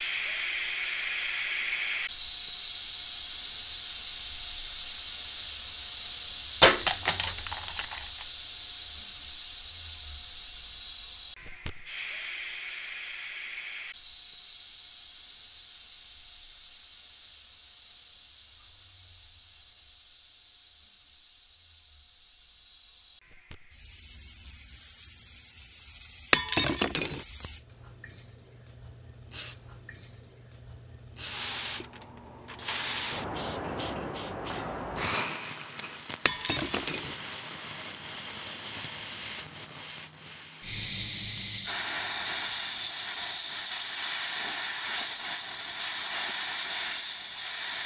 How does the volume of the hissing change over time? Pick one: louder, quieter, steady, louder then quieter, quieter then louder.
quieter then louder.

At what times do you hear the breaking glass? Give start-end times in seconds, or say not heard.
6.6-8.0, 26.3-27.2, 36.2-37.1.